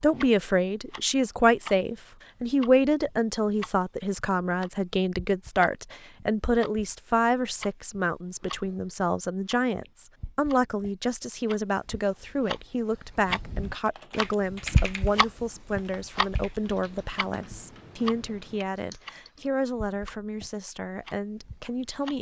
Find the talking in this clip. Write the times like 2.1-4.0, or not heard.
0.0-22.1.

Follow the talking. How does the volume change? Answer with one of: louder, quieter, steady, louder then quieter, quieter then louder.
quieter.